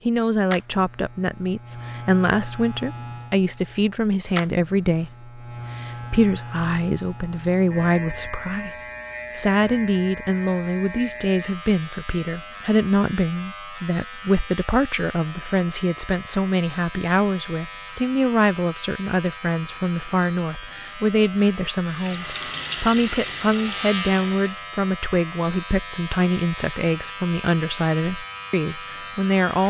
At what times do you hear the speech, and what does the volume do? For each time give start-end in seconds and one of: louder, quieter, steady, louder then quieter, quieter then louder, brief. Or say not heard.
0.1-29.6 steady.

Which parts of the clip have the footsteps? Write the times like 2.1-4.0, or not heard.
not heard.